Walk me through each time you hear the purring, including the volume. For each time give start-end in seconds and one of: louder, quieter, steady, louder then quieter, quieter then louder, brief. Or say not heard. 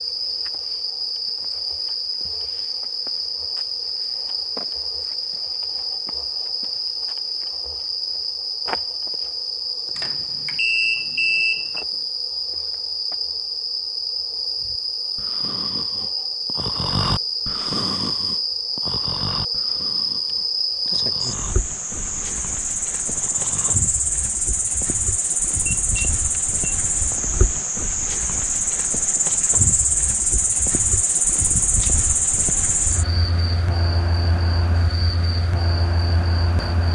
not heard.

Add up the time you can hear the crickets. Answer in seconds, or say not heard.
37 s.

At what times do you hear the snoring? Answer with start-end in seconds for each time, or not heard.
14.6-23.8.